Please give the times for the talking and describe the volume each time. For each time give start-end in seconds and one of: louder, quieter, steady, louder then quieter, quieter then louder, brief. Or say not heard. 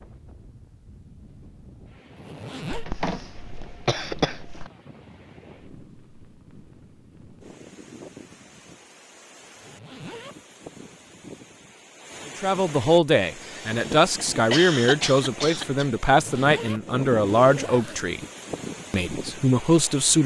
12.2-18.2 steady
18.9-20.2 brief.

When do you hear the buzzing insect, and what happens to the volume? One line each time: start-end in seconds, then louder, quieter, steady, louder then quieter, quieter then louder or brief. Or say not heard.
not heard.